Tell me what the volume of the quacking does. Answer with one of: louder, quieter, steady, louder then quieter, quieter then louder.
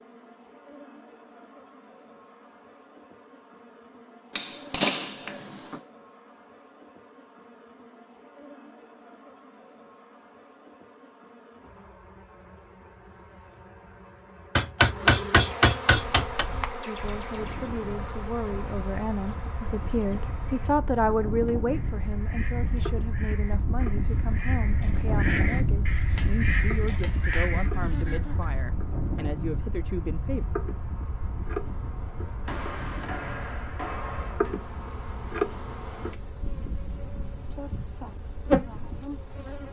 louder.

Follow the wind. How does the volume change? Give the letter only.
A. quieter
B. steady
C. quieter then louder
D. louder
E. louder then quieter
E.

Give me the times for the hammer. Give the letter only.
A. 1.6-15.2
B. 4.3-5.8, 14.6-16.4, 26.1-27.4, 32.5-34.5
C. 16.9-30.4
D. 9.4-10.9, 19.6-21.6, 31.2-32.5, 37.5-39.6
B.